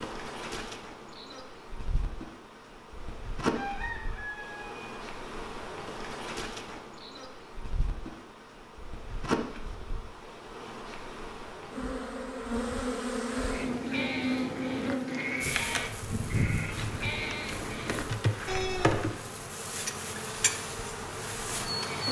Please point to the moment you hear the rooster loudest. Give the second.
4 s.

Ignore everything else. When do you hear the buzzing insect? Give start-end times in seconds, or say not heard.
0.0-22.0.